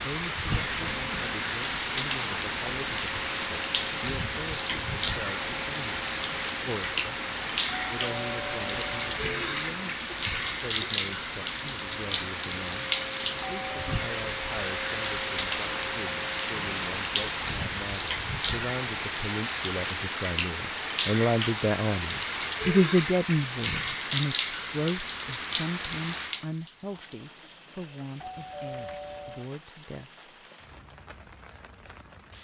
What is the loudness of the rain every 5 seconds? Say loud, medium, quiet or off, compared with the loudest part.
loud, loud, loud, loud, loud, medium, quiet.